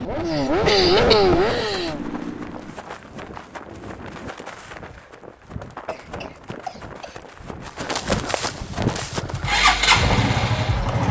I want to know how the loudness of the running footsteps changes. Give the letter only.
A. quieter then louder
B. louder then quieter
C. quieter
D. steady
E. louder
E.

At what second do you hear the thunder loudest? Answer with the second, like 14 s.
4 s.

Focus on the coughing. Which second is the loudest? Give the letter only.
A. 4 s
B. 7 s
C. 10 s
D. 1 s
D.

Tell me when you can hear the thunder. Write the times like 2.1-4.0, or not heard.
2.5-4.3.